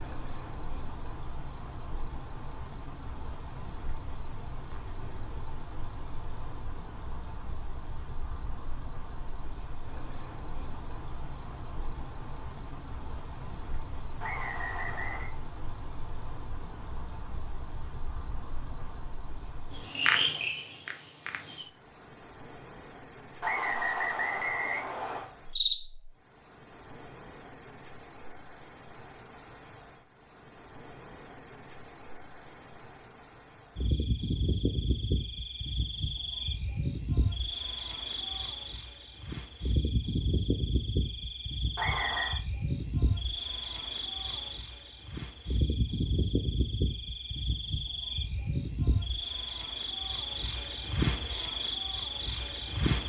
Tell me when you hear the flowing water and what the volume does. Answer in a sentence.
You can't hear the flowing water here.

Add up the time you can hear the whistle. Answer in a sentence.
You can hear the whistle for 4 seconds altogether.